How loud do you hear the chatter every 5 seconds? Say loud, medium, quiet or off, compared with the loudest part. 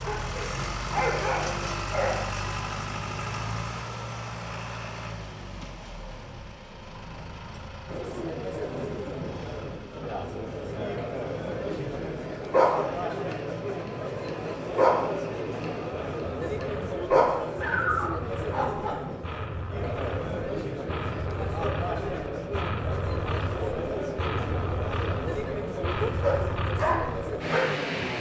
off, loud, loud, loud, loud, loud.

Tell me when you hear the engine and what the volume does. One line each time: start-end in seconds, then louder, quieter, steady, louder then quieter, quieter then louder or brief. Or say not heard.
0.0-28.1 quieter then louder.